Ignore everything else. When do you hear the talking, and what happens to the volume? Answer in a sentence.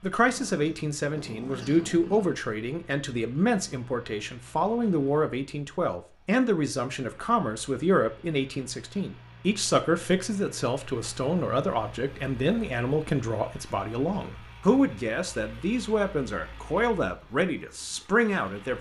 You can hear the talking from 0.0 to 18.7 s, at a steady volume.